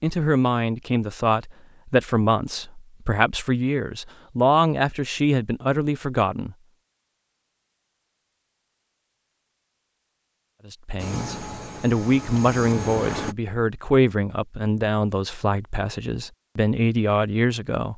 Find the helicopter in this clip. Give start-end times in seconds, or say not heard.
10.9-13.3.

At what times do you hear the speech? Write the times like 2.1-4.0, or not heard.
0.0-6.5, 10.7-17.9.